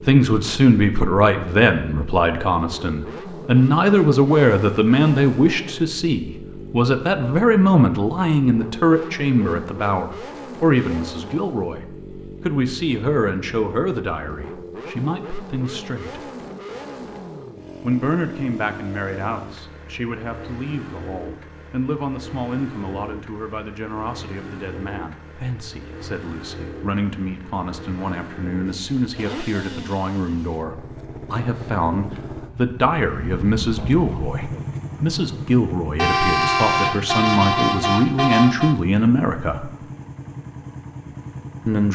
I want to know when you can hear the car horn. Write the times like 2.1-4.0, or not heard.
36.0-38.8.